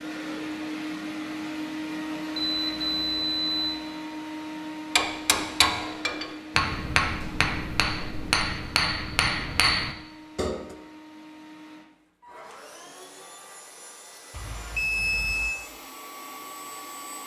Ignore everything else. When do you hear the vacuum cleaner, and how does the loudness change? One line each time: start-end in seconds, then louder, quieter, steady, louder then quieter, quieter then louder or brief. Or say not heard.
0.0-17.2 quieter.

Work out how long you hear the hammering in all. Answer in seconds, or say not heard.
6 s.